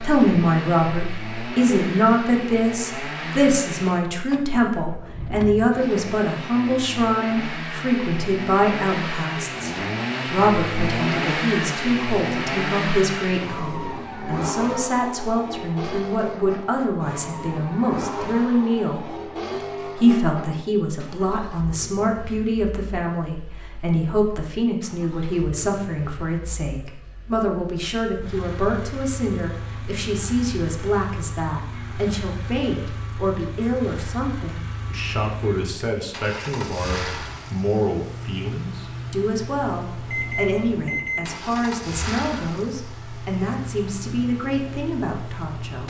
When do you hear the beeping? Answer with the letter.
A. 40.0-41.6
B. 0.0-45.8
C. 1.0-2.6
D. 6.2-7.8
A.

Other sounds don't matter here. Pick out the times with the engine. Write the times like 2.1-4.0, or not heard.
0.0-45.8.